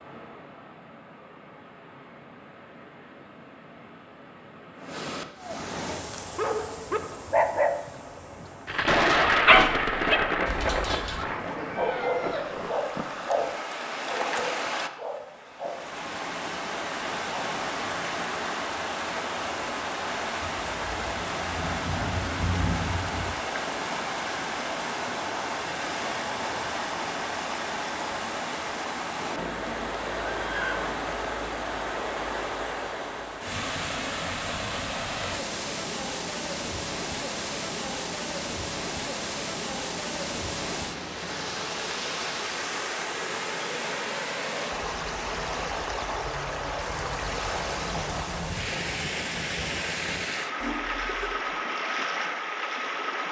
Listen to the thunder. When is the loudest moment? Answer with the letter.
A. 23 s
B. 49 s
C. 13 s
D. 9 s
D.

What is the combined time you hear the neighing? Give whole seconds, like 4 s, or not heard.
4 s.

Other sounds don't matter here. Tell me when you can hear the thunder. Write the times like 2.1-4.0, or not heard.
8.7-13.6, 20.4-23.4, 46.9-50.3.